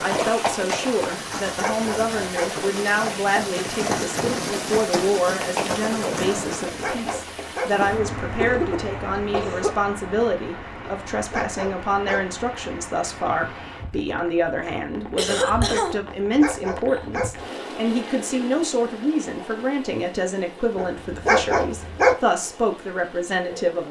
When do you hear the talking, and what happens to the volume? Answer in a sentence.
You can hear the talking from 0.0 to 23.8 s, at a steady volume.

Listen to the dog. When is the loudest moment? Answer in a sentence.
The volume of the dog peaks at 22 seconds.